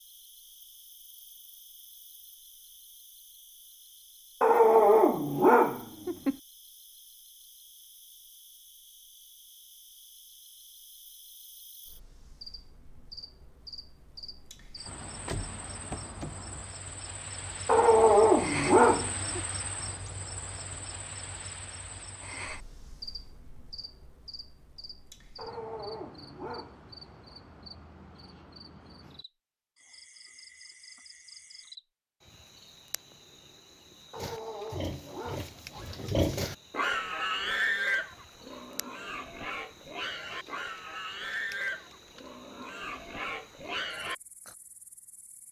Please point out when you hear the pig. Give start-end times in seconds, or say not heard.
34.1-44.5.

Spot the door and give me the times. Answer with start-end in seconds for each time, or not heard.
14.8-16.7.